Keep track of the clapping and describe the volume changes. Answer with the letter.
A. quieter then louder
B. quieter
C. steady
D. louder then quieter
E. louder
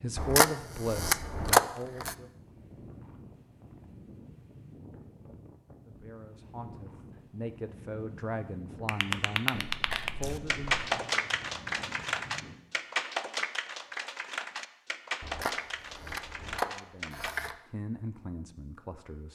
B.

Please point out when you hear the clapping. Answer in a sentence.
You can hear the clapping from 8.8 to 17.4 s.